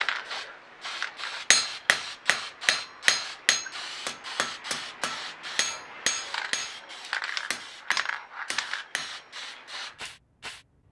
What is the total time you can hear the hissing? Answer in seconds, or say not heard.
11 s.